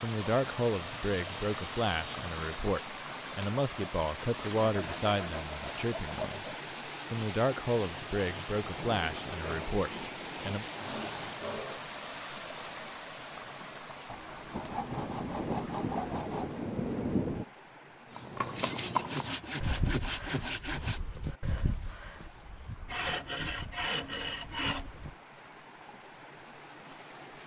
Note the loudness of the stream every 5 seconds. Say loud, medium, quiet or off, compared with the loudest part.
loud, loud, loud, medium, quiet, medium.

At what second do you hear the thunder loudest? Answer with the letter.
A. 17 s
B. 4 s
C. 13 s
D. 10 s
A.